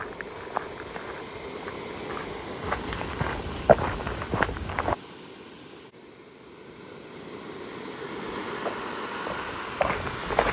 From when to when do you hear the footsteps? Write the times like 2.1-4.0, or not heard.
0.0-5.0, 8.5-10.4.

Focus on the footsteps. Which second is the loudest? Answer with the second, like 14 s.
4 s.